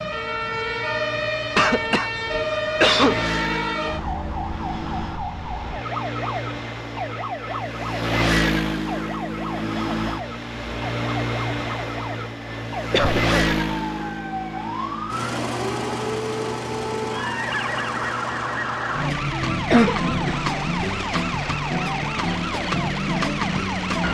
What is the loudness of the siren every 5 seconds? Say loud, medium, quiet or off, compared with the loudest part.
loud, medium, medium, loud, loud.